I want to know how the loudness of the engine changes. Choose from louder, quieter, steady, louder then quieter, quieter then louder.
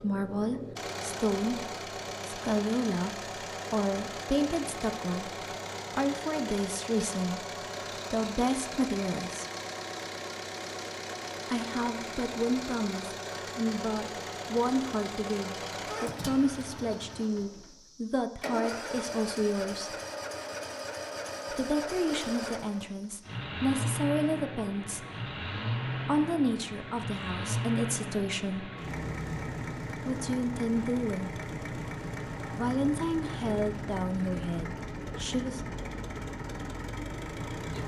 steady.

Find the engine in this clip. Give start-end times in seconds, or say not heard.
0.0-37.8.